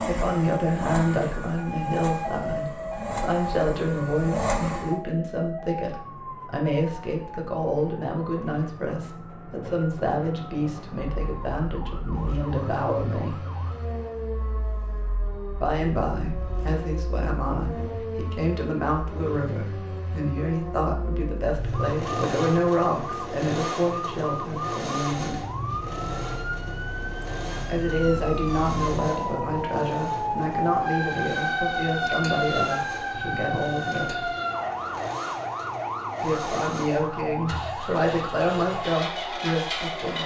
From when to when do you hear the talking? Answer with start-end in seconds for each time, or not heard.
0.0-13.4, 15.6-25.4, 27.6-34.3, 36.2-40.2.